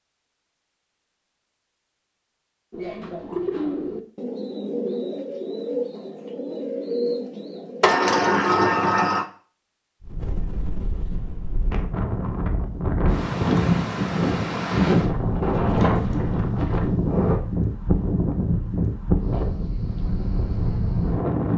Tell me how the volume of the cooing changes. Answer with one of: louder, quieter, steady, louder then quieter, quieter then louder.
steady.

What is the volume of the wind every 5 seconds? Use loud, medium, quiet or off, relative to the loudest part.
off, off, loud, loud, loud.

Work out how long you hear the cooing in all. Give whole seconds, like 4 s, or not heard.
6 s.